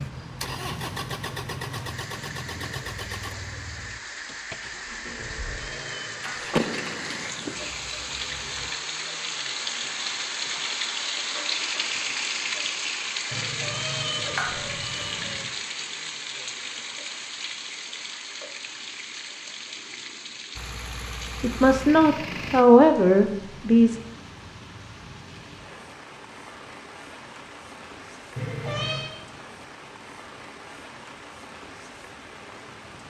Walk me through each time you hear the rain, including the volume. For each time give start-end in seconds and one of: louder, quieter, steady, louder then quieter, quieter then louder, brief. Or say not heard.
0.0-33.0 louder then quieter.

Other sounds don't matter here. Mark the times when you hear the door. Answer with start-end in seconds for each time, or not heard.
6.5-7.3.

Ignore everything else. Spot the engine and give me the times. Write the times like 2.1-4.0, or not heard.
0.0-8.8, 20.6-22.6.